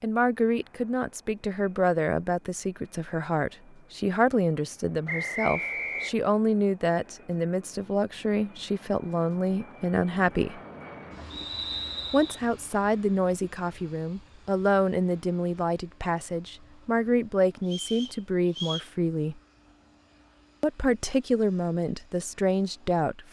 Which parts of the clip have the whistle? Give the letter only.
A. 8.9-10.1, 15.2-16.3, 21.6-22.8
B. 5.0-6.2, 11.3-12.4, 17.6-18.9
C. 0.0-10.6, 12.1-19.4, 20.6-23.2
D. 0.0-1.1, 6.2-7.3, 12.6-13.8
B.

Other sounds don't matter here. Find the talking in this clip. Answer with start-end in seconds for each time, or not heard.
0.0-10.6, 12.1-19.4, 20.6-23.2.